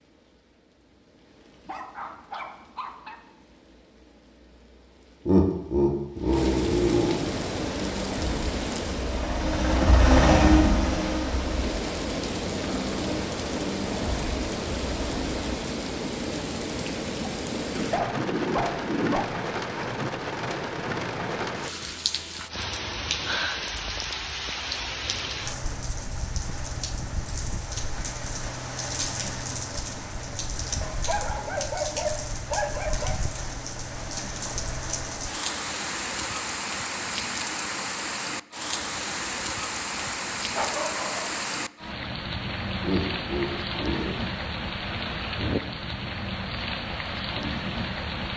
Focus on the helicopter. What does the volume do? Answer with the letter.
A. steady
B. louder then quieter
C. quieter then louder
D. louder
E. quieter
B.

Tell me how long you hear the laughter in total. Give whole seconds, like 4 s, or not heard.
3 s.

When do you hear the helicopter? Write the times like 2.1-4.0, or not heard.
7.2-15.6.